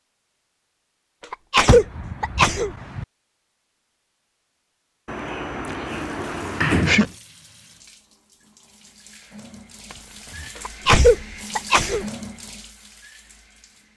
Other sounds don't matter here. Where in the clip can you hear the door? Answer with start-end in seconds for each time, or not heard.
1.6-3.0, 5.0-7.1, 9.9-11.3.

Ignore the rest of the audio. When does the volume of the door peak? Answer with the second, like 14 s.
7 s.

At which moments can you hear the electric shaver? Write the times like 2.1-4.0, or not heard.
not heard.